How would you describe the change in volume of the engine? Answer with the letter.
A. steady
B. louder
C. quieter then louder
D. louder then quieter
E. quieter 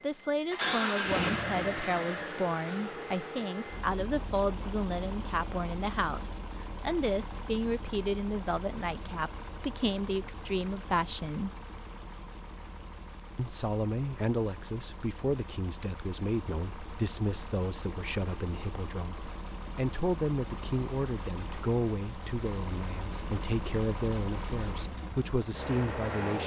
C.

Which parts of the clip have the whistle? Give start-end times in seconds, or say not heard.
not heard.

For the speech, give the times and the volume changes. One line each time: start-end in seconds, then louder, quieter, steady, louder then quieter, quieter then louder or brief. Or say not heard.
0.0-11.5 steady
13.3-26.4 steady.